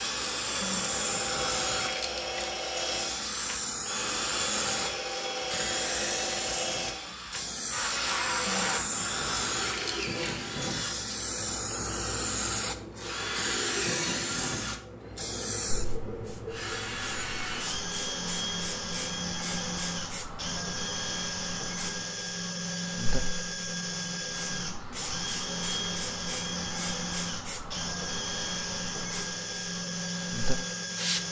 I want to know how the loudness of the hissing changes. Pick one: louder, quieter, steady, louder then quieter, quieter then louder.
quieter.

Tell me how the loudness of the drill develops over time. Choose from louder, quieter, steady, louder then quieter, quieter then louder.
steady.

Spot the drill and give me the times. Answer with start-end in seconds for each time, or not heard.
0.0-31.2.